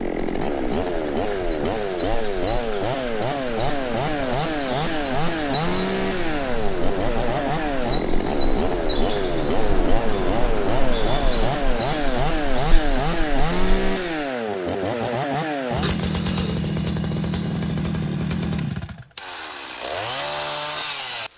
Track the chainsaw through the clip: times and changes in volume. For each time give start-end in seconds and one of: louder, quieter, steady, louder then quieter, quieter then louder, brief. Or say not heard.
0.0-21.3 steady.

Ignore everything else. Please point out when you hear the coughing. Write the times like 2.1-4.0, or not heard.
15.8-16.6.